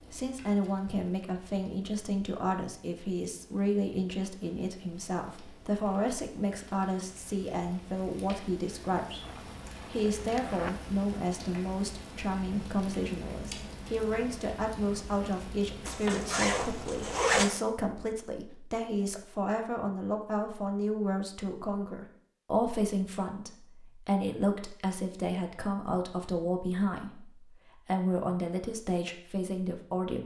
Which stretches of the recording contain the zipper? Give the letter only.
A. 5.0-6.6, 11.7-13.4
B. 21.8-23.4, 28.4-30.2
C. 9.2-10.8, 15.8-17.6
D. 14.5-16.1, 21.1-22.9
C.